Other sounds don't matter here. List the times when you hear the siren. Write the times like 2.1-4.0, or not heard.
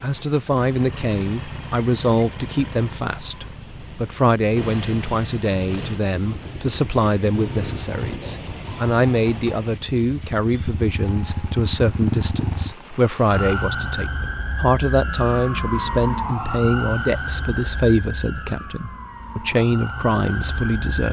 13.2-21.0.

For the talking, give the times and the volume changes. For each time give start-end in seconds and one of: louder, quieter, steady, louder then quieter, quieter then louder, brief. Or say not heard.
0.0-21.0 steady.